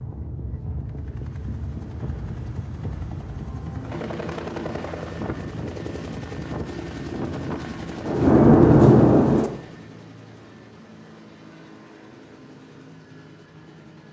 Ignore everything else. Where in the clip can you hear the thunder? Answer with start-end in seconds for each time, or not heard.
8.1-9.5.